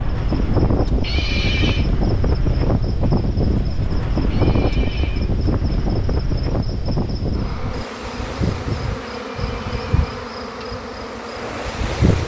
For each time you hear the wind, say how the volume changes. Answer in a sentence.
You can hear the wind from 0.0 to 12.2 s, getting quieter.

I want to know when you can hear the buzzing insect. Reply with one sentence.
You can hear the buzzing insect from 0.2 to 12.2 s.